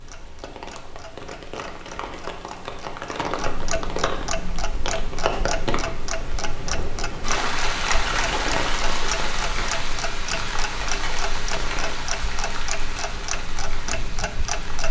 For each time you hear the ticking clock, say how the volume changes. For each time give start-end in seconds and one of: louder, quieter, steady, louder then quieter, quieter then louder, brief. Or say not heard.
0.0-14.8 louder.